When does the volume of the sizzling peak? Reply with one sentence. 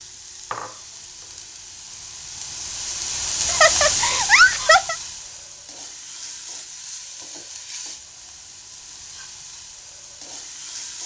The loudest moment of the sizzling is at 4 seconds.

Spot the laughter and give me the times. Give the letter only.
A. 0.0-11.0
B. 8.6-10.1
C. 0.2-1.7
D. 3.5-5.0
D.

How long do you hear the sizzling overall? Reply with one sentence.
The sizzling can be heard for 11 seconds in total.